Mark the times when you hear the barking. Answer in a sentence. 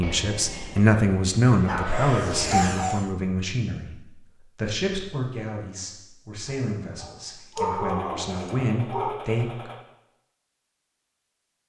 The barking can be heard from 1.6 to 3.0 s and from 6.5 to 9.2 s.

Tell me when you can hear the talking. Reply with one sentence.
You can hear the talking from 0.0 to 9.7 s.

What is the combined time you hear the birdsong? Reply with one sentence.
You can't hear the birdsong here.